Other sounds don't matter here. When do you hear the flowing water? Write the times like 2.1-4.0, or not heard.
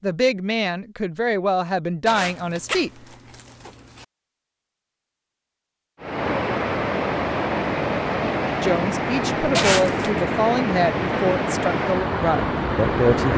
6.0-13.3.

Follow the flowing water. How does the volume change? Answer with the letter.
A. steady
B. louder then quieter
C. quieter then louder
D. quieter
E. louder
A.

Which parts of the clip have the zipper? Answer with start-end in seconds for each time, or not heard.
2.0-4.0, 9.6-10.2.